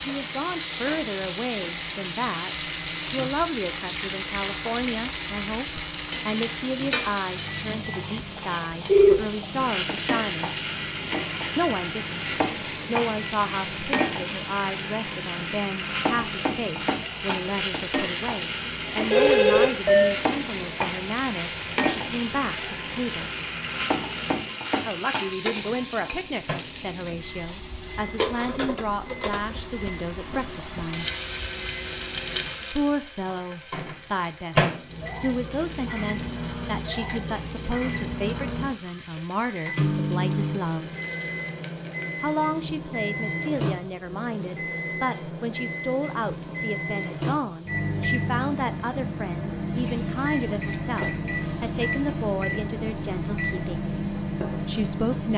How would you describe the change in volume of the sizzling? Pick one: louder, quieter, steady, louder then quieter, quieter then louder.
quieter.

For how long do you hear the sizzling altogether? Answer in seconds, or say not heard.
55 s.